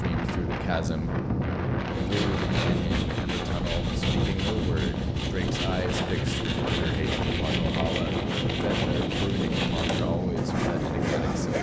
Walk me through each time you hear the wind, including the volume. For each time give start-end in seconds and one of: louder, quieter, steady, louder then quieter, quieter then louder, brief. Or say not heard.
0.0-11.5 steady.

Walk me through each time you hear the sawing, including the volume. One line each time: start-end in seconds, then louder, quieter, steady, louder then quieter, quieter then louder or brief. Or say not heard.
1.9-11.5 steady.